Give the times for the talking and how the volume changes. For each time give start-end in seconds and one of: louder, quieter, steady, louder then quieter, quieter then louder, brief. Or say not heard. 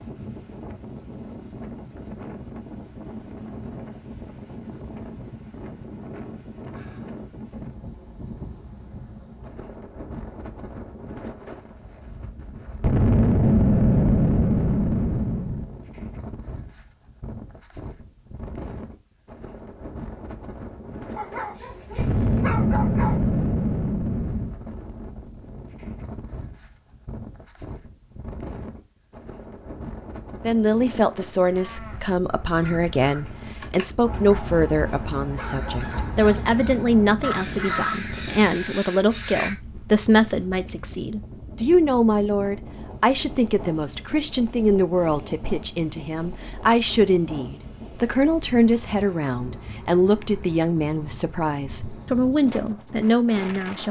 30.4-53.8 steady.